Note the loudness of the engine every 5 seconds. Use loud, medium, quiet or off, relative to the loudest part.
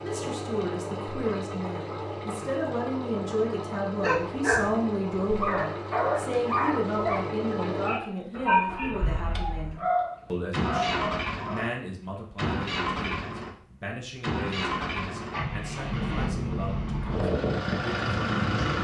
medium, medium, loud, loud.